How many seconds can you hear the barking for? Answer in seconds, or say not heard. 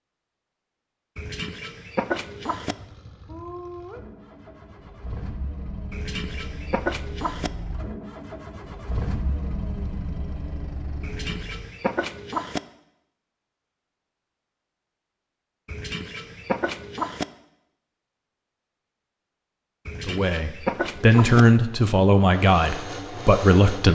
not heard.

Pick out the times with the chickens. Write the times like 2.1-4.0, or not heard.
1.1-2.8, 5.9-7.5, 11.0-12.6, 15.7-17.2, 19.9-21.4.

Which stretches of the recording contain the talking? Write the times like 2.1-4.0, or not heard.
20.1-23.8.